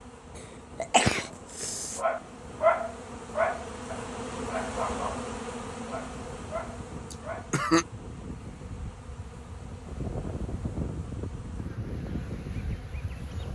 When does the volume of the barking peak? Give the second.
3 s.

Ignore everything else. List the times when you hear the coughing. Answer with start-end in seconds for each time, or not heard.
0.8-2.0, 7.1-7.8.